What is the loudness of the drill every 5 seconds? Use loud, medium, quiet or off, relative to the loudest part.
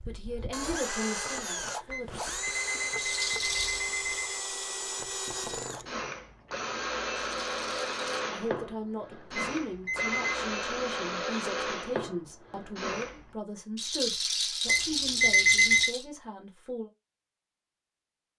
loud, loud, loud, off.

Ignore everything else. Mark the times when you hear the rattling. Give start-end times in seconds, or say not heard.
3.0-3.9, 7.4-8.0, 13.8-16.1.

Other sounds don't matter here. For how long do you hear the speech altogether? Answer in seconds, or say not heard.
11 s.